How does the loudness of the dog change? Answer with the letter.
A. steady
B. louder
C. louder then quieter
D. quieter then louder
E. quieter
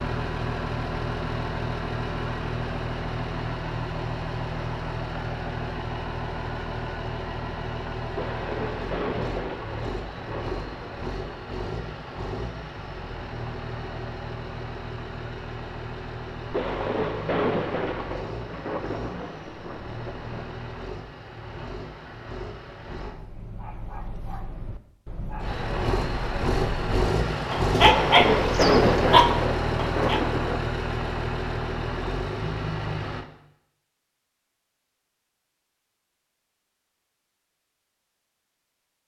B.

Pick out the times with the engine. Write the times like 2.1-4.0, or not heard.
0.0-23.1, 25.4-33.2.